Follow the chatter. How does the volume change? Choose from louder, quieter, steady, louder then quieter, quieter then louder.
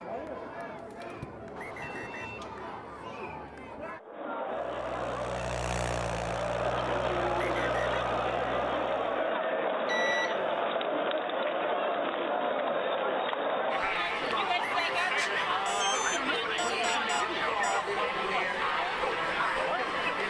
louder.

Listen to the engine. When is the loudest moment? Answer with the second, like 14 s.
6 s.